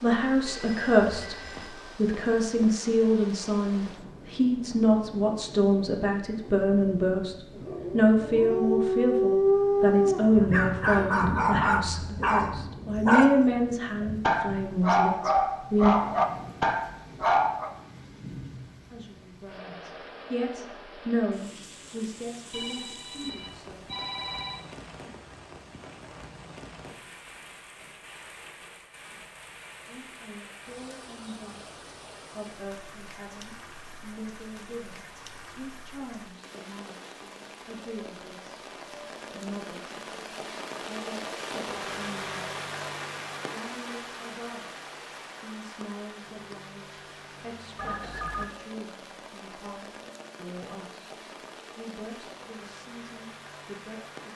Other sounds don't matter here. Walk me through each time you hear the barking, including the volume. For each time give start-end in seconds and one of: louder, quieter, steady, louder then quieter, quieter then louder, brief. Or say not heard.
7.5-17.7 steady.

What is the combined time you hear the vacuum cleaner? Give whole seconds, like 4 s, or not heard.
not heard.